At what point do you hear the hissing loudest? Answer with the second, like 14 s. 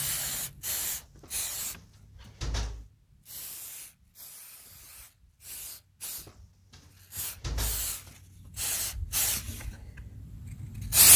11 s.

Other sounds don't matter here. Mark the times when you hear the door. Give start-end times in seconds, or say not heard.
1.1-2.9, 6.2-8.0.